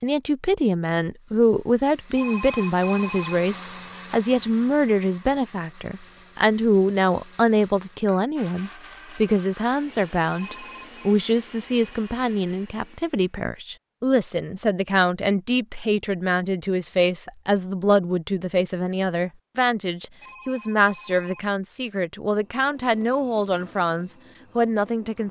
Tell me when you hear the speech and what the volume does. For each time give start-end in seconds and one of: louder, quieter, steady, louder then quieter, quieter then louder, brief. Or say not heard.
0.0-25.2 steady.